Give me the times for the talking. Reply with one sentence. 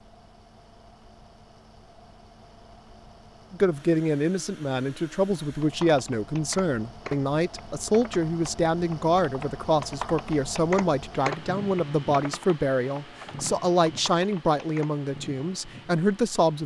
You can hear the talking from 3.5 to 16.6 s.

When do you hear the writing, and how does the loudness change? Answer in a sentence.
The writing can't be heard in this clip.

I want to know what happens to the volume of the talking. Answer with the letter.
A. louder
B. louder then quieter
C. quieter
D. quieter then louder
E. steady
E.